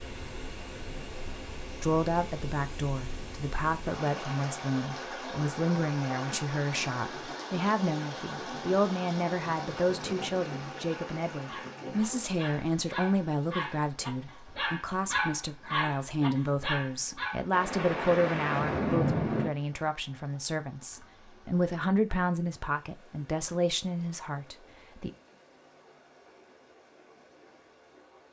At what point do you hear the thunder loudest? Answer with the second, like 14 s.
19 s.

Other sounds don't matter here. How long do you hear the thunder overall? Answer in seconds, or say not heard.
6 s.